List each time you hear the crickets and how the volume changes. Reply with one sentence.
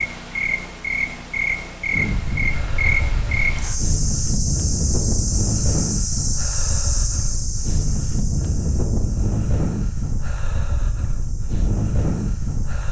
You can hear the crickets from 0.0 to 12.8 s, getting quieter.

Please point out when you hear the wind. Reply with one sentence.
You can hear the wind from 1.9 to 12.8 s.